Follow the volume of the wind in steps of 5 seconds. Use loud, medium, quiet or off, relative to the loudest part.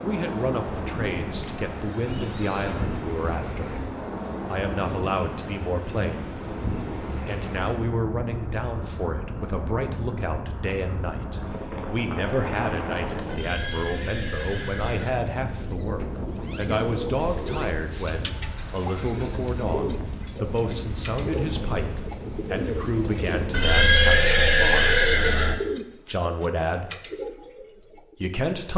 loud, loud, loud, loud, loud, off.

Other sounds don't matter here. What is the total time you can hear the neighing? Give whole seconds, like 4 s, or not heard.
6 s.